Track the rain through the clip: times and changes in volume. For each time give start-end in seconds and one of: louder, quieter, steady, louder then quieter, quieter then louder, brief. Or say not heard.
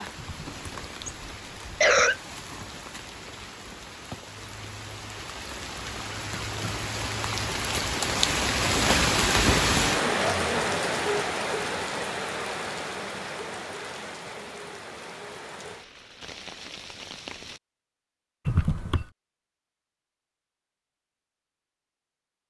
0.0-17.6 louder then quieter.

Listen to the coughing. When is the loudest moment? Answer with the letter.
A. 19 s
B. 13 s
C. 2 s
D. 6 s
C.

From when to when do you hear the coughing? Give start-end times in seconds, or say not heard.
0.1-2.1, 18.4-19.1.